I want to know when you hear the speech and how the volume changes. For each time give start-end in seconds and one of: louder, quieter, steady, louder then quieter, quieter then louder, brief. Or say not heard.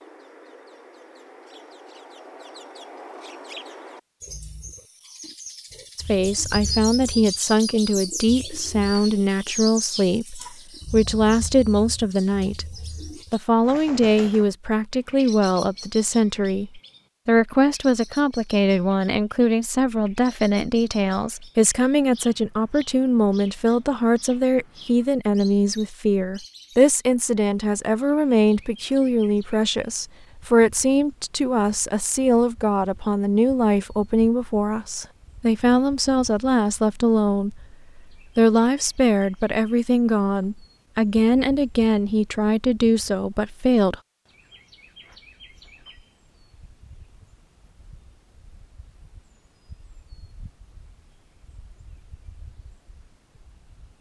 6.0-12.7 steady
13.3-44.0 steady.